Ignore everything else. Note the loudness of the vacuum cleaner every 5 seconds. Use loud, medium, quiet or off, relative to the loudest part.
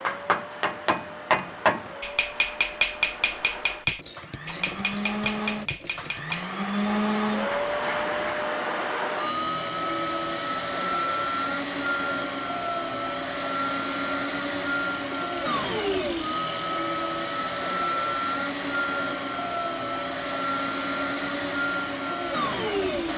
medium, loud, loud, loud, loud.